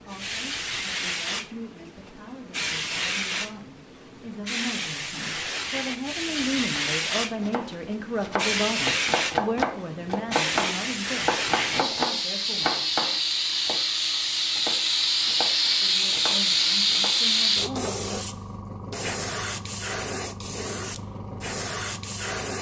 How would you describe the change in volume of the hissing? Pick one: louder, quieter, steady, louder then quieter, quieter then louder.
louder then quieter.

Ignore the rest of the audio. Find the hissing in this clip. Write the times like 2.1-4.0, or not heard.
0.0-22.5.